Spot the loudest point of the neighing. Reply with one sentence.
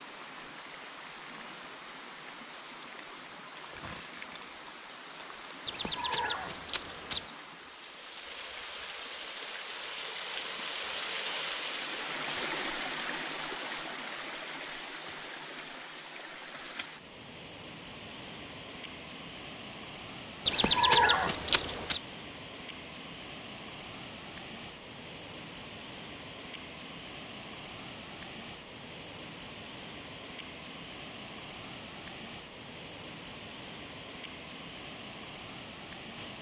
The volume of the neighing peaks at 21 seconds.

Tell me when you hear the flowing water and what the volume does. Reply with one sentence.
You can hear the flowing water from 0.0 to 36.3 s, getting louder then quieter.